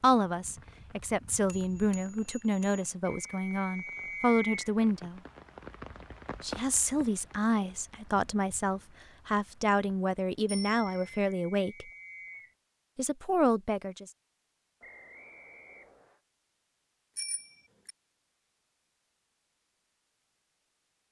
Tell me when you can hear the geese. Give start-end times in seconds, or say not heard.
not heard.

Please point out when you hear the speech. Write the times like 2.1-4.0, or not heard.
0.0-5.2, 6.4-11.8, 12.9-14.1.